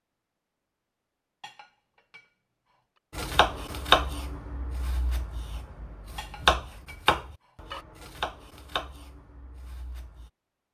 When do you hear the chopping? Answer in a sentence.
You can hear the chopping from 3.1 to 10.3 s.